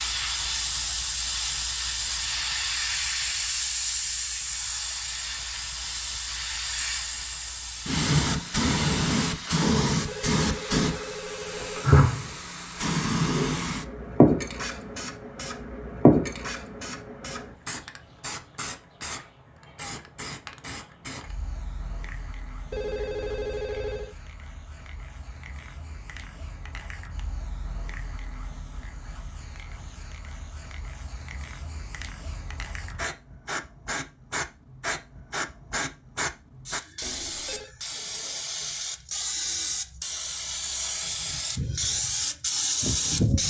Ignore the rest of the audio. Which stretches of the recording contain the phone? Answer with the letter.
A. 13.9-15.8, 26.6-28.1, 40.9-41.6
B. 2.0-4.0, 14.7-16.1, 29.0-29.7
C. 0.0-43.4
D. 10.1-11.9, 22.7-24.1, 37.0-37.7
D.